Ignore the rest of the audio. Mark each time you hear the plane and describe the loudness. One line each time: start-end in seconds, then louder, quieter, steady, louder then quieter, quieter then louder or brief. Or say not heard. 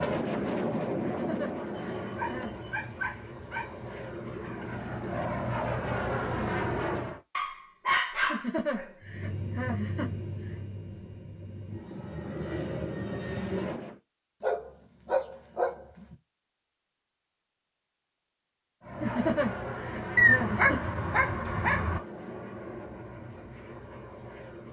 0.0-7.2 quieter then louder
9.0-14.0 quieter then louder
18.8-24.6 quieter.